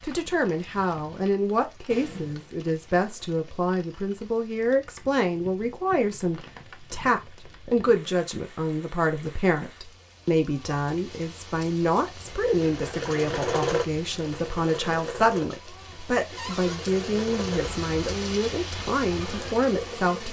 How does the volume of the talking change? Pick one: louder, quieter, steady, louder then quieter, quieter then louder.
steady.